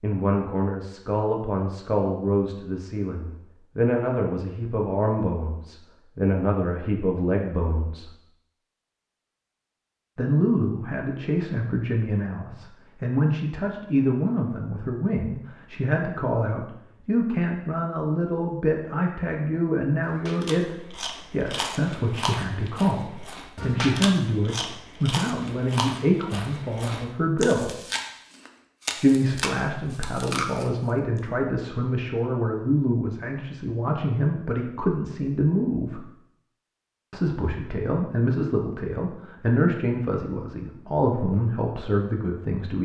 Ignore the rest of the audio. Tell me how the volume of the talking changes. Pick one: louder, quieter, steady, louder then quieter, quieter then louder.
steady.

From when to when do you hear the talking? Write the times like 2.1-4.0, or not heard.
0.0-8.1, 10.2-27.8, 29.0-36.0, 37.1-42.8.